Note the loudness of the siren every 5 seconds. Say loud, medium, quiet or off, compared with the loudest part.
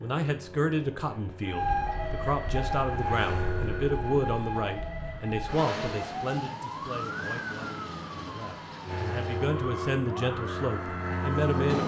loud, loud, medium.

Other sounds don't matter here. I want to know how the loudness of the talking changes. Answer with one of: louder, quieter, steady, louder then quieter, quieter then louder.
quieter then louder.